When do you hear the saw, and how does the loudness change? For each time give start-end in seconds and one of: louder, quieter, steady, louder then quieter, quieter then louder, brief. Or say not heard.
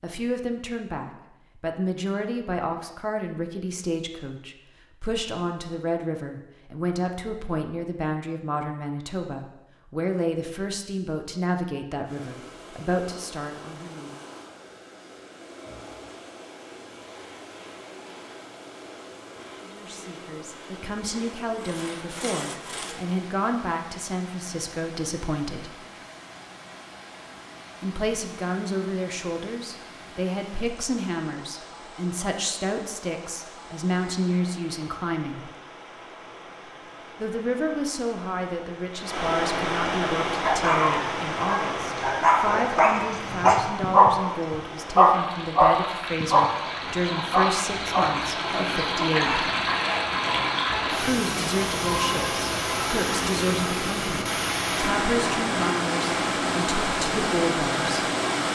17.0-23.1 louder.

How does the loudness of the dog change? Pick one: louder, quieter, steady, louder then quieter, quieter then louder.
louder then quieter.